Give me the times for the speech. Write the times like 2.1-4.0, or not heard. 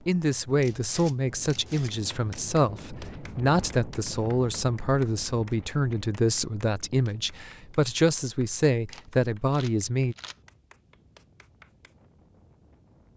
0.1-10.2.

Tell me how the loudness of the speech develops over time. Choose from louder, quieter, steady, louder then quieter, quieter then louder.
steady.